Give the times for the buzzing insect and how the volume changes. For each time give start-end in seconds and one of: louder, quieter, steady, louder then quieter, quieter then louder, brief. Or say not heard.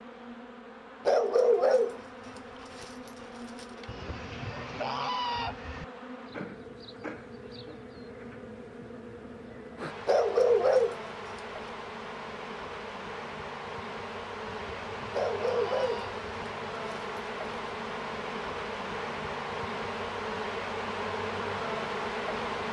0.0-22.6 louder.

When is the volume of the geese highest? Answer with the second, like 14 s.
5 s.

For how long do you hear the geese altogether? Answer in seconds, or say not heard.
4 s.